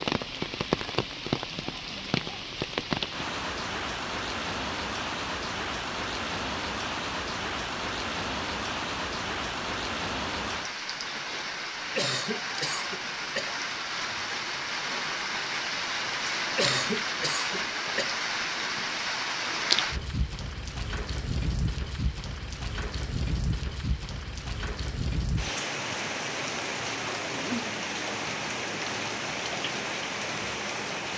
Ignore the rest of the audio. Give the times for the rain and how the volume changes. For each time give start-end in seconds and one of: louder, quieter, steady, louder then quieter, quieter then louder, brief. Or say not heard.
0.0-31.1 steady.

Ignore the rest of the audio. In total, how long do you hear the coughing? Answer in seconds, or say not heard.
3 s.